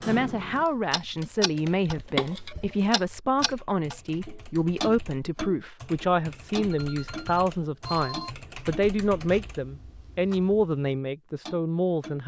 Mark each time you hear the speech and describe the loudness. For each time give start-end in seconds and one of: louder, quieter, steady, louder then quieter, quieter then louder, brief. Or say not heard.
0.1-12.2 steady.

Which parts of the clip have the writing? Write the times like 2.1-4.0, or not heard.
not heard.